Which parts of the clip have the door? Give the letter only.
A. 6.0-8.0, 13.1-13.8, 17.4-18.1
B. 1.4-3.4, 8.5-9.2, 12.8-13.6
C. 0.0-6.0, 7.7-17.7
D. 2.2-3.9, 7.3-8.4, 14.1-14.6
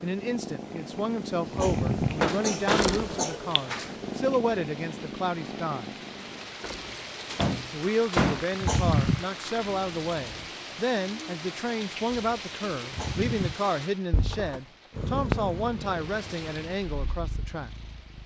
D.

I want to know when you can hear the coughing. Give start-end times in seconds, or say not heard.
1.4-3.4, 8.5-9.2, 12.8-13.6.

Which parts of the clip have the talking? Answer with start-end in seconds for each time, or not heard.
0.0-6.0, 7.7-17.7.